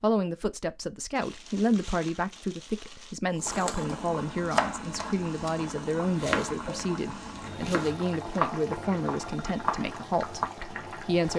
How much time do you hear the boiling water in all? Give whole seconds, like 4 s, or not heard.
8 s.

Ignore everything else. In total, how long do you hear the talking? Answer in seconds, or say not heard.
11 s.